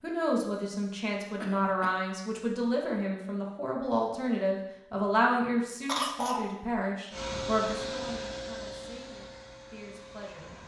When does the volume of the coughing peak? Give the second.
6 s.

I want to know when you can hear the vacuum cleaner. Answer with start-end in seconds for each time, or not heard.
7.1-10.6.